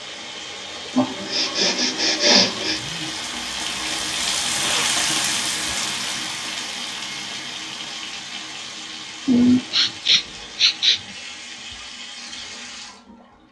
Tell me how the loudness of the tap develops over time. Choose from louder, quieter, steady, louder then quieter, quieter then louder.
louder then quieter.